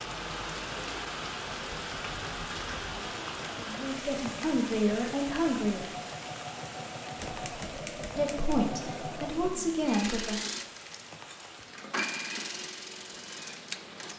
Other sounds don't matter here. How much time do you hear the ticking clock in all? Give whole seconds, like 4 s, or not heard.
not heard.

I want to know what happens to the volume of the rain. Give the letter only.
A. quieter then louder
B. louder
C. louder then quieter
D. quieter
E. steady
D.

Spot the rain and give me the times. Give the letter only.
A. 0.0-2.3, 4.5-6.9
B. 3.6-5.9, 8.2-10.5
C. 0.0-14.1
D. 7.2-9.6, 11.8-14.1
C.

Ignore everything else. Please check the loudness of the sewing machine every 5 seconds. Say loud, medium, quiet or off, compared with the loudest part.
medium, loud, loud.